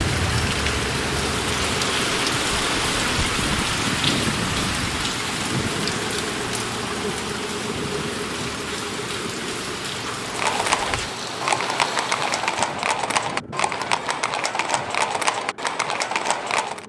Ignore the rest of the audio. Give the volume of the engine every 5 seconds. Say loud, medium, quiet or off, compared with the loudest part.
loud, loud, medium, quiet.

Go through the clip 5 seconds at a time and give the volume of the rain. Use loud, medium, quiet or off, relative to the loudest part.
loud, medium, medium, off.